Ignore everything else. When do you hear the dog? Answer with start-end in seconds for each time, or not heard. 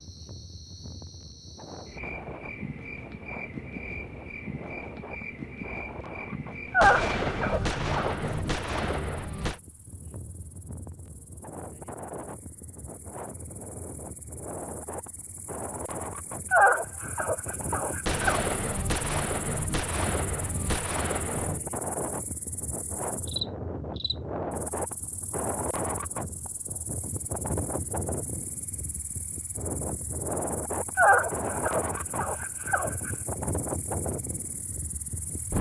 6.7-8.2, 16.5-18.4, 30.9-33.1.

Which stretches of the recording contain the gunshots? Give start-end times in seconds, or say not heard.
6.8-9.6, 18.1-21.6.